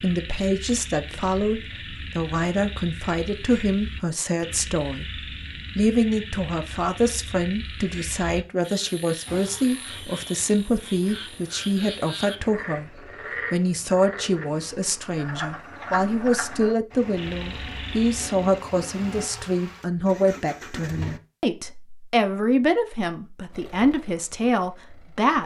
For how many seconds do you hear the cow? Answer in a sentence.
The cow can't be heard in this clip.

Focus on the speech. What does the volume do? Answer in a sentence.
The loudness of the speech stays about the same.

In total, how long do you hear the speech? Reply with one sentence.
You can hear the speech for 25 seconds altogether.